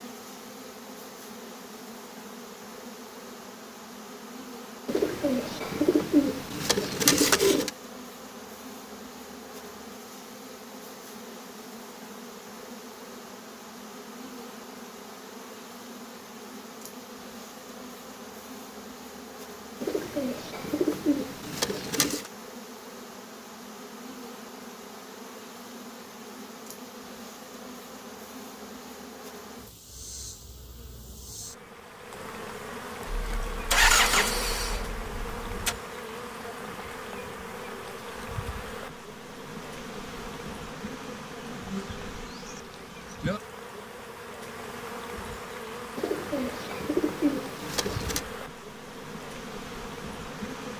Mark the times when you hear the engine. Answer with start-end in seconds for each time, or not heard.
33.0-35.8.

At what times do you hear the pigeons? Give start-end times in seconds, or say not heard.
4.8-7.7, 19.8-22.3, 46.0-48.2.